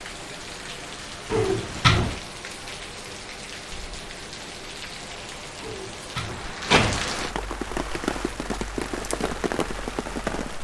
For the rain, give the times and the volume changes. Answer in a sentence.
The rain can be heard from 0.0 to 10.5 s, getting louder.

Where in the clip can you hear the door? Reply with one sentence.
The door can be heard from 1.3 to 2.2 s and from 5.6 to 7.2 s.